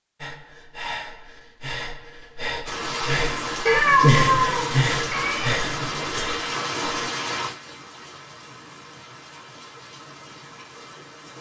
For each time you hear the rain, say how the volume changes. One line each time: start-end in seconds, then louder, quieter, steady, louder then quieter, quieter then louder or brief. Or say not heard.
2.6-11.3 quieter.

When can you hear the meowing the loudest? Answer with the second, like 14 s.
4 s.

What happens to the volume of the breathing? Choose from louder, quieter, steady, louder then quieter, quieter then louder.
louder then quieter.